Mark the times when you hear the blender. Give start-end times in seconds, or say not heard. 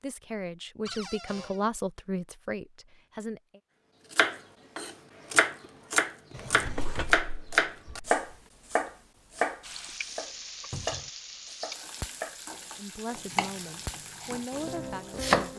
not heard.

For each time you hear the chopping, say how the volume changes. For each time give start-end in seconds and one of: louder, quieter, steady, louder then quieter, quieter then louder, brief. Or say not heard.
4.1-15.5 quieter.